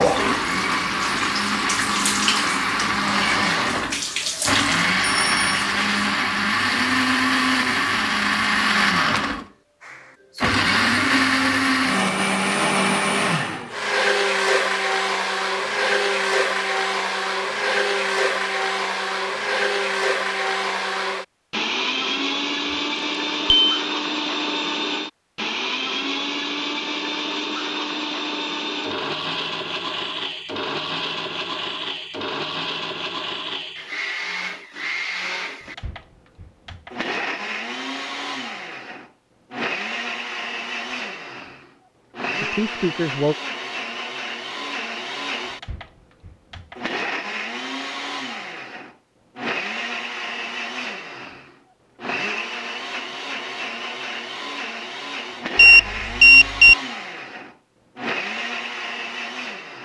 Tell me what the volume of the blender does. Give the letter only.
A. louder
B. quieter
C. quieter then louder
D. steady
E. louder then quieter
B.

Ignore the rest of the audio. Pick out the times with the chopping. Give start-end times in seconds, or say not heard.
not heard.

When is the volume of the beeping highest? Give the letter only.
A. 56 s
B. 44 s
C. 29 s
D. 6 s
A.